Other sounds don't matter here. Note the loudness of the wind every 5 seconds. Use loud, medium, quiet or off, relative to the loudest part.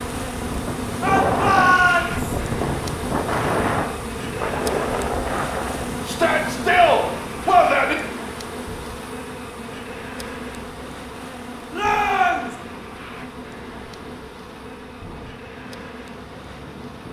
loud, medium, quiet, quiet.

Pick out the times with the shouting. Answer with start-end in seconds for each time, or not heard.
1.0-2.4, 6.0-8.0, 11.7-12.6.